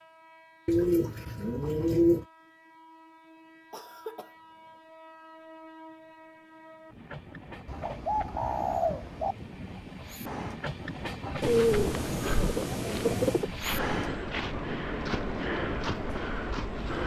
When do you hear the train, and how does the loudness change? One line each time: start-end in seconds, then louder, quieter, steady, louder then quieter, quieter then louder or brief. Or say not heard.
0.0-17.0 louder.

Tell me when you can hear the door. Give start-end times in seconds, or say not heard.
not heard.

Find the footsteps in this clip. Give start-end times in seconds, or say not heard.
11.3-17.0.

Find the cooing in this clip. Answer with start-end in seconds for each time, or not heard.
0.7-2.2, 7.7-9.3, 11.4-13.5.